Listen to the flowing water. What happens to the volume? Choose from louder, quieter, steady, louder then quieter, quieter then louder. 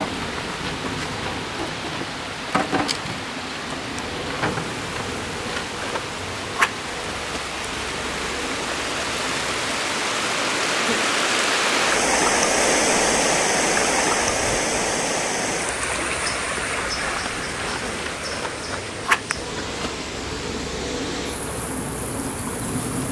louder then quieter.